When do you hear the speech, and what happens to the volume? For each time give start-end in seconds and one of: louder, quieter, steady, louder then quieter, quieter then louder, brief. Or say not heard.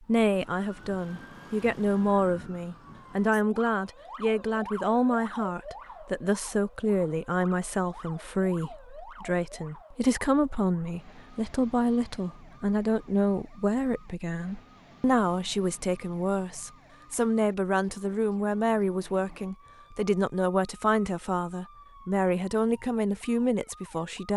0.0-24.3 steady.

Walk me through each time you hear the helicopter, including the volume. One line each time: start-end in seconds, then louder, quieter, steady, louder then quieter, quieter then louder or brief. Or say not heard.
not heard.